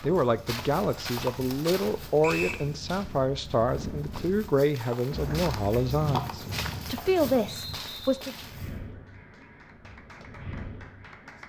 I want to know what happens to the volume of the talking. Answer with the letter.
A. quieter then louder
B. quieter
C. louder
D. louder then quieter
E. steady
E.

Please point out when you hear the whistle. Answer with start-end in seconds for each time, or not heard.
2.2-2.6, 7.5-8.2.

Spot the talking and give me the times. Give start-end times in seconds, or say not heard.
0.0-8.3.